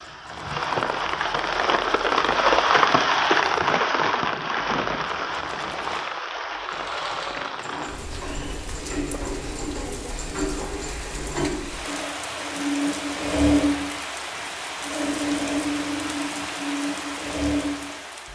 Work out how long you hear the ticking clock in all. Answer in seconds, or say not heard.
not heard.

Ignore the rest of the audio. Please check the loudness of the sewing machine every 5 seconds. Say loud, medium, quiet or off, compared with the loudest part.
quiet, medium, loud, loud.